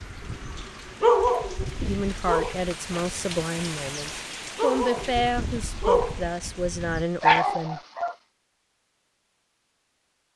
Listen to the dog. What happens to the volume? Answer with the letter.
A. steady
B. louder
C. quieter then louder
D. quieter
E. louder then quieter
C.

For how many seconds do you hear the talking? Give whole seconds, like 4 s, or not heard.
6 s.